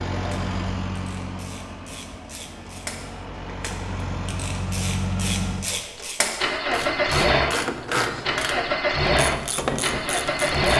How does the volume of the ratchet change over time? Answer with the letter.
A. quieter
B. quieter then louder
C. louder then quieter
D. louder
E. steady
D.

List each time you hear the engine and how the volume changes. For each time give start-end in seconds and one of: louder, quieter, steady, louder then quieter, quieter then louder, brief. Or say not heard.
0.0-10.7 louder.